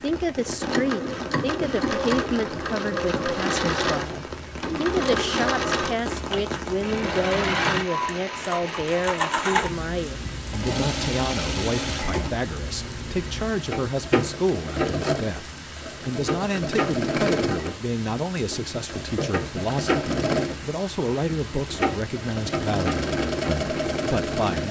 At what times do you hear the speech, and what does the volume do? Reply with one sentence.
The speech can be heard from 0.0 to 24.6 s, at a steady volume.